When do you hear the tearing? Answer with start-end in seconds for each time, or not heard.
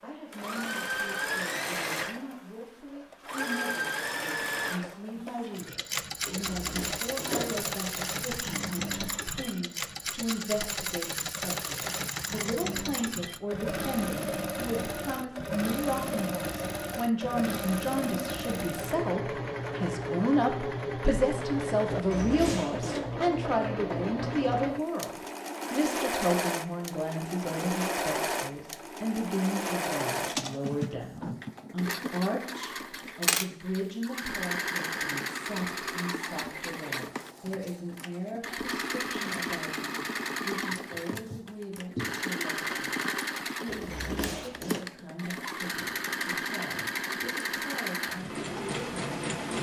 not heard.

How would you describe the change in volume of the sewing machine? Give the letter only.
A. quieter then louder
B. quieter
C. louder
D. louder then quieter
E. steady
E.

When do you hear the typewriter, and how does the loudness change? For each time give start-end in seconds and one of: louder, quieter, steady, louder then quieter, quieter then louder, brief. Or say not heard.
not heard.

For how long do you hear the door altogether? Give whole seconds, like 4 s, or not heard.
4 s.